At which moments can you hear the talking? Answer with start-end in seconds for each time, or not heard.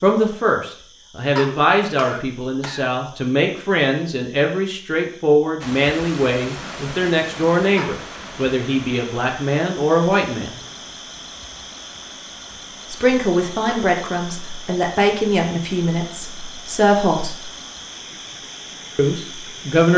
0.0-10.6, 12.9-17.4, 18.9-19.9.